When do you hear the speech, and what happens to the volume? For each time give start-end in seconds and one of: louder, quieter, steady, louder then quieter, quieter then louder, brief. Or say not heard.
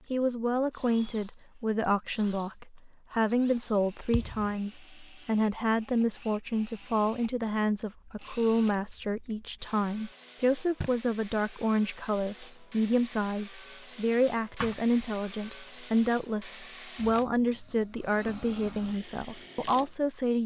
0.1-20.4 steady.